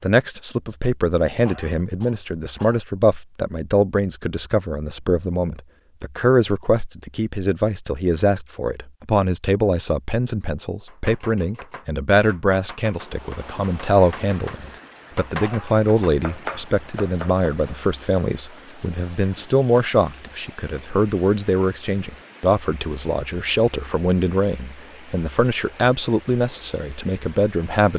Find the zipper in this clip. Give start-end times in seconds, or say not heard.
not heard.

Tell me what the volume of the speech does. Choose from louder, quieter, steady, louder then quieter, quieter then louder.
steady.